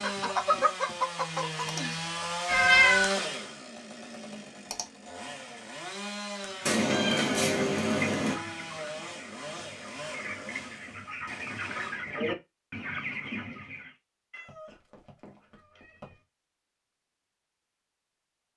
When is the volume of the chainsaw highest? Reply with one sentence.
The loudest moment of the chainsaw is at 3 seconds.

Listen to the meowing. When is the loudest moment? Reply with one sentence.
The loudest moment of the meowing is at 3 seconds.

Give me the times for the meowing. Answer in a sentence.
The meowing can be heard from 2.5 to 3.1 s, from 6.7 to 8.3 s and from 14.3 to 16.1 s.